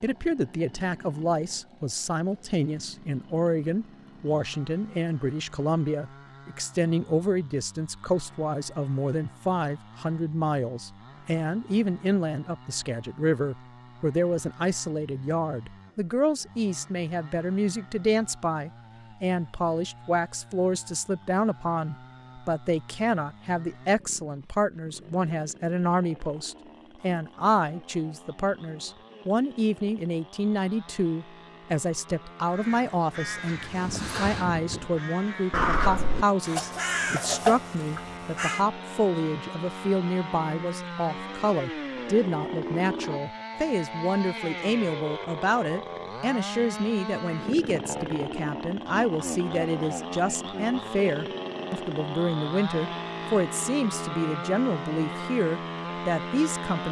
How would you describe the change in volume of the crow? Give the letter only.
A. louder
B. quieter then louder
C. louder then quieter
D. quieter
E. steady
A.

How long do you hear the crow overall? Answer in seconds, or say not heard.
6 s.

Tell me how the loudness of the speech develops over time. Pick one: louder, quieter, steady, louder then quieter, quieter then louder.
steady.